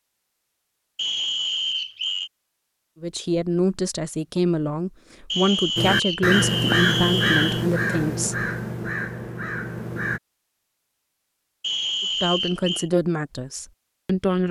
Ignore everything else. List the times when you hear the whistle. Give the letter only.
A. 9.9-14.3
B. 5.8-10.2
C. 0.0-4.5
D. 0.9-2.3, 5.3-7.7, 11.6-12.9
D.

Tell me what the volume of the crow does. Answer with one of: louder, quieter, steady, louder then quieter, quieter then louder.
quieter.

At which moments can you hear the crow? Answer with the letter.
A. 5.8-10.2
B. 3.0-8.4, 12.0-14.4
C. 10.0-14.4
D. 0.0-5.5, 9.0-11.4
A.